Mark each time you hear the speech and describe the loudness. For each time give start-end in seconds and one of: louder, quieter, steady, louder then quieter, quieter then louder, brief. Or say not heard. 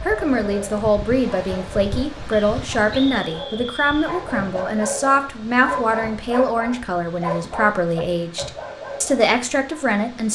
0.1-10.3 steady.